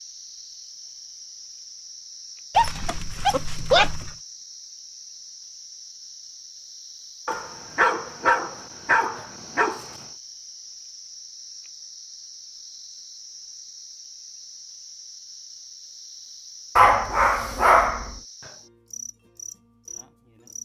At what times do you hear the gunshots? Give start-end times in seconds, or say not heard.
not heard.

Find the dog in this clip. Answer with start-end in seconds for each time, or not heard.
2.5-4.1, 7.2-10.1, 16.8-18.1.